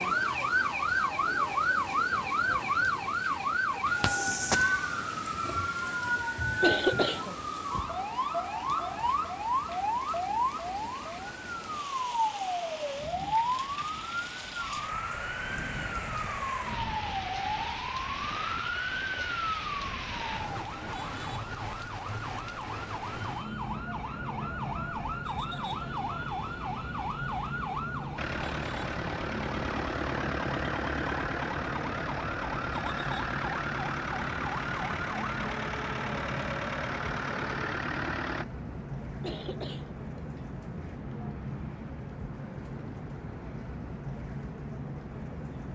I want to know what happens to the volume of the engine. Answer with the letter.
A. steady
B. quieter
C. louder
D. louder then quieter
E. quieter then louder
A.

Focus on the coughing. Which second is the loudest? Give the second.
7 s.